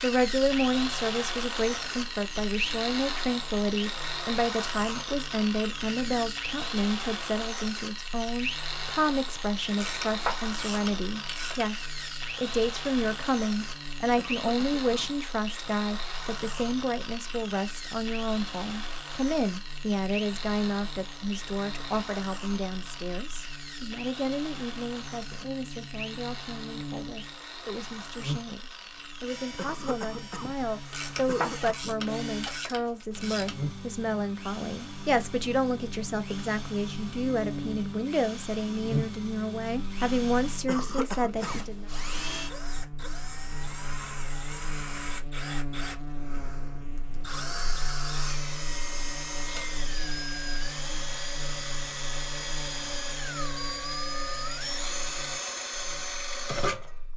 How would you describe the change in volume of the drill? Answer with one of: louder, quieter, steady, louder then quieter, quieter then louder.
quieter then louder.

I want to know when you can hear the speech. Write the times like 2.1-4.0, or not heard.
0.0-41.9.